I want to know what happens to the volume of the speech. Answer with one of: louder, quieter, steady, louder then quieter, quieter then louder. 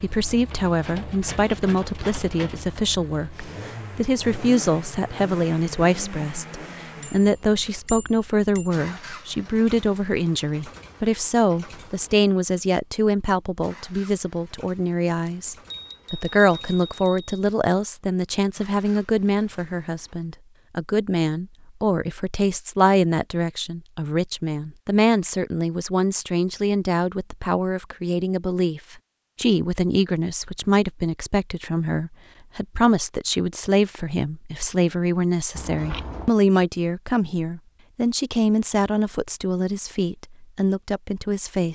steady.